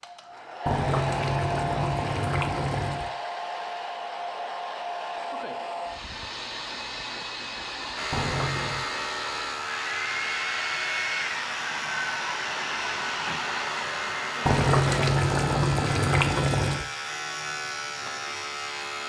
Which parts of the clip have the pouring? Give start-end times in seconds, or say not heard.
0.7-3.1, 8.1-8.8, 14.4-16.9.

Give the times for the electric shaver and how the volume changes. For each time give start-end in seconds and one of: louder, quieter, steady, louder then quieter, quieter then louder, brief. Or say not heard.
8.0-19.0 steady.